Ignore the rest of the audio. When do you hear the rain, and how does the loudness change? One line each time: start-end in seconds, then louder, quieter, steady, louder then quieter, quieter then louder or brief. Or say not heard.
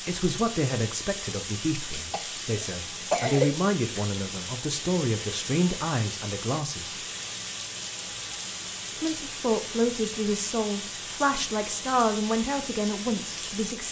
0.0-13.8 steady.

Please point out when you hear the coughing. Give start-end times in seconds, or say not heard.
2.1-3.5.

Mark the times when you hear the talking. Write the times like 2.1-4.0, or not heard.
0.1-7.0, 9.0-13.8.